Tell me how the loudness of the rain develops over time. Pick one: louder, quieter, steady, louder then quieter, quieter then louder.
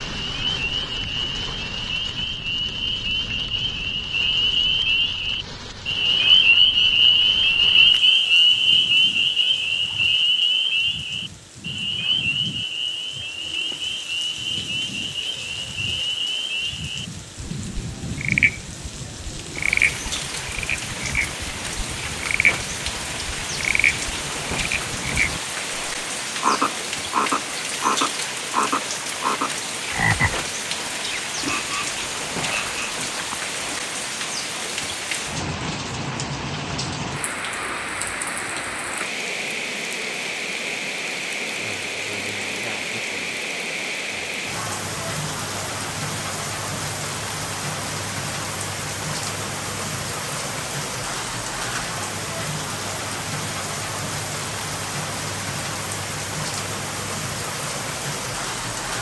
louder.